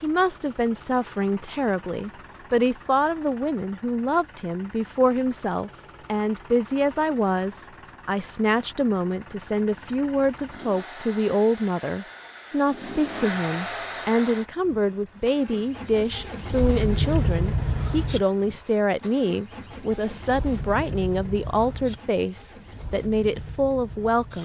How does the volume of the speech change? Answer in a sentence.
The volume of the speech stays about the same.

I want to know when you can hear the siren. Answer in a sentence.
You can't hear the siren here.